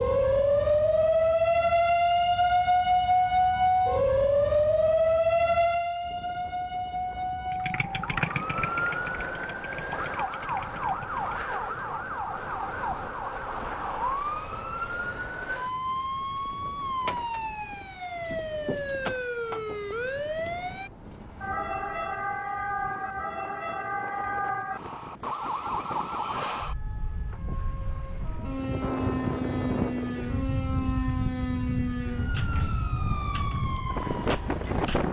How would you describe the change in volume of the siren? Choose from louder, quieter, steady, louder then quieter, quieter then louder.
quieter.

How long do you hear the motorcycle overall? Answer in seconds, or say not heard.
4 s.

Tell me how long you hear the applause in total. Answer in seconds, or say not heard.
not heard.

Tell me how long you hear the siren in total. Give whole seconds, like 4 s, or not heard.
35 s.